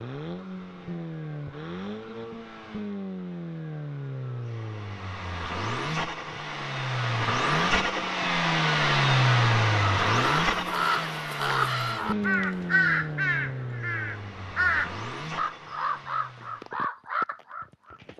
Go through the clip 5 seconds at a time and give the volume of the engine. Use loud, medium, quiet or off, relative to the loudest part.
medium, loud, medium, quiet.